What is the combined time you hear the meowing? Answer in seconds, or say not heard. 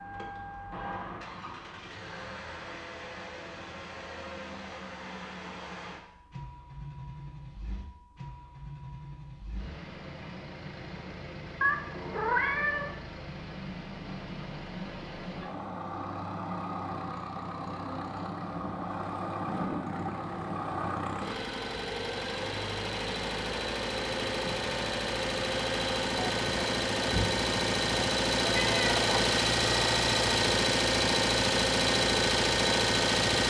2 s.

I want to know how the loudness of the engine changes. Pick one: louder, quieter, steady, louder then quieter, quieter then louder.
louder.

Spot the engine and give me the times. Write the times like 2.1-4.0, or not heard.
0.0-33.4.